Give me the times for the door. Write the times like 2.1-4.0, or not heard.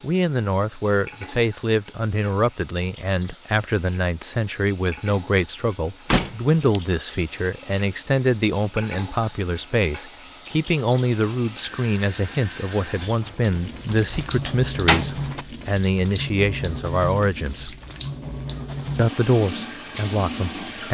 6.1-6.8, 13.0-15.4.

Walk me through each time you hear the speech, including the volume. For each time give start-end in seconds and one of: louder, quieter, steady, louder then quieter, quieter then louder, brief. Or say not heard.
0.0-17.8 steady
18.9-20.8 brief.